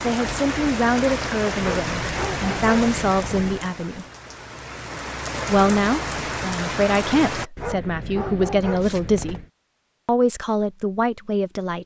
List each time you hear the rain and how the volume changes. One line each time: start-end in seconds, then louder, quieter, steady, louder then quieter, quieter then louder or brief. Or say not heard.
0.0-7.5 quieter then louder.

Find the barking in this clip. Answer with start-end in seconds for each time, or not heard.
1.6-3.6, 7.5-9.5.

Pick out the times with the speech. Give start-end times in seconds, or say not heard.
0.0-4.0, 5.5-9.4, 10.1-11.8.